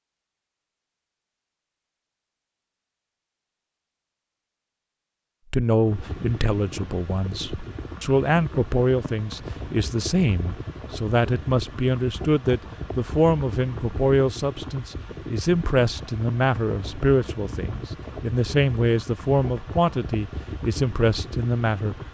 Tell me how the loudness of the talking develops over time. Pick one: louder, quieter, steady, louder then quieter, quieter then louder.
steady.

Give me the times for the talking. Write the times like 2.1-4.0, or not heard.
5.5-21.9.